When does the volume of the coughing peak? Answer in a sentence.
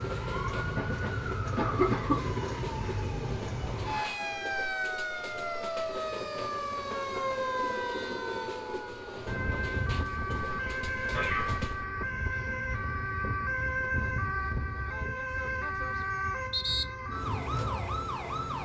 The volume of the coughing peaks at 2 seconds.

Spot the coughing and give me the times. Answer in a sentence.
You can hear the coughing from 0.8 to 2.5 s and from 10.3 to 11.6 s.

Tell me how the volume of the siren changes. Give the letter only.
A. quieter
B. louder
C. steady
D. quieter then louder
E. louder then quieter
C.